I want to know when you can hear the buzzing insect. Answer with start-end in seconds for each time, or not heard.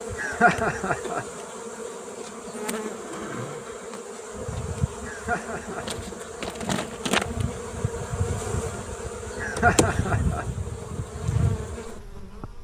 0.0-12.5.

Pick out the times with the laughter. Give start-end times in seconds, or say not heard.
0.1-1.2, 5.0-5.8, 9.4-10.4.